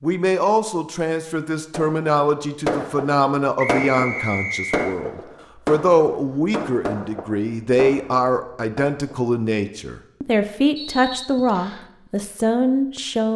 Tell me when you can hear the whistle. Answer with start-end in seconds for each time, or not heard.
3.5-5.0, 10.8-11.9.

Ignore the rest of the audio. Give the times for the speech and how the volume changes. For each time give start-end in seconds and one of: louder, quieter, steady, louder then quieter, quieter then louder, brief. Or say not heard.
0.0-13.3 steady.